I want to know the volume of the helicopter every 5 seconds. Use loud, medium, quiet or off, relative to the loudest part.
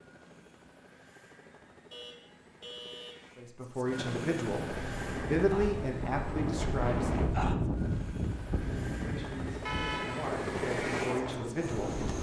medium, medium, loud.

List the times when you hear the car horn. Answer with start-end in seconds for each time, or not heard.
1.9-3.2, 9.7-10.2.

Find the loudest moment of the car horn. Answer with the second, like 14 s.
10 s.